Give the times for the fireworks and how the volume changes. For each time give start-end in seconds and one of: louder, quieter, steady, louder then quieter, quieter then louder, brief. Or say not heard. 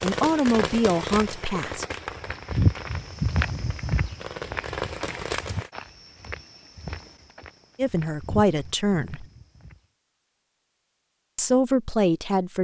0.0-5.7 quieter then louder.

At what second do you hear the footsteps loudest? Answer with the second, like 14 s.
3 s.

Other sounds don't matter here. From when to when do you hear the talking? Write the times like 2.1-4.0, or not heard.
0.0-1.9, 7.8-9.2, 11.3-12.5.